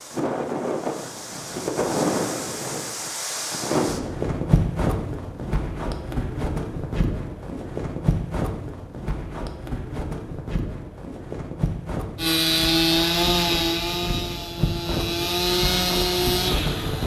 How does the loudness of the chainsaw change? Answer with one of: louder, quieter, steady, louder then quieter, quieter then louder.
quieter then louder.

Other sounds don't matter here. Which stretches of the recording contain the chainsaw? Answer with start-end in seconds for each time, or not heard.
12.2-17.0.